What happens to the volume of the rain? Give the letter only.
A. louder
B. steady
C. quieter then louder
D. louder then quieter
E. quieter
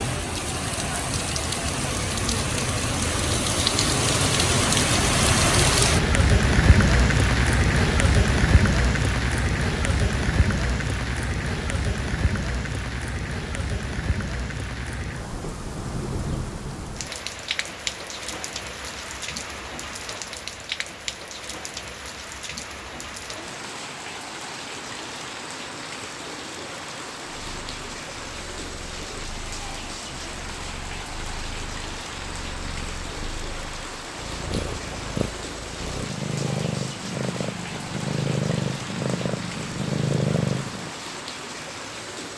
E.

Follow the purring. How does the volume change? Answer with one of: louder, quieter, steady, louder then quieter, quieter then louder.
louder.